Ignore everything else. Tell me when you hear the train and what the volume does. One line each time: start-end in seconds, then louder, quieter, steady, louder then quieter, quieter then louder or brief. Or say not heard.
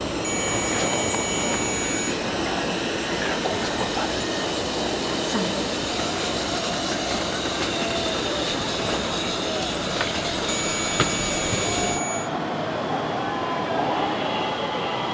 0.0-15.1 steady.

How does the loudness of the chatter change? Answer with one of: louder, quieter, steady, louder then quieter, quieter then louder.
steady.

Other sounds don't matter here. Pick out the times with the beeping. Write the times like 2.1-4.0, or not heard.
0.2-2.1, 10.4-12.3.